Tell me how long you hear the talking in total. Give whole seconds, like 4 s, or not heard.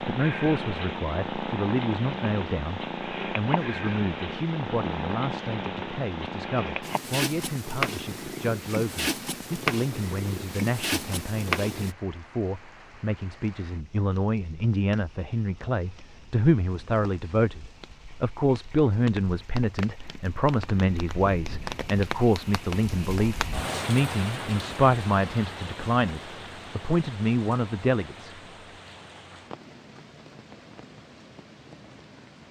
28 s.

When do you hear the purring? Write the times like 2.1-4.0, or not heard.
0.0-11.9.